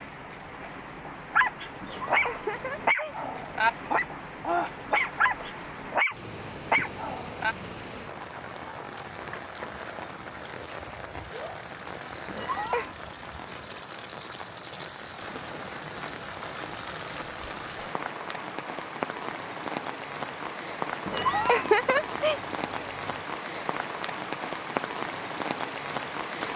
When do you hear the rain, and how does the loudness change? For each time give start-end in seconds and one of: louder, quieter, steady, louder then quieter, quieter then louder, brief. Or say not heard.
0.0-26.5 louder.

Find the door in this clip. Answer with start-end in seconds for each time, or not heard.
not heard.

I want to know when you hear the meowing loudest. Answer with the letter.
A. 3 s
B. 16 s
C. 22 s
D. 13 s
C.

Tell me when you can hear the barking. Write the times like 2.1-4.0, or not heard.
1.3-7.5.